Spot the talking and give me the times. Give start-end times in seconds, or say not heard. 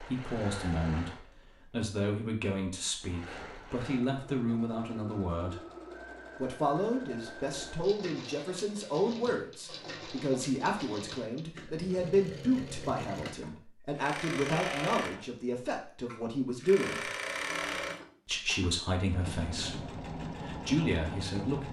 0.0-5.6, 6.3-17.1, 18.2-21.6.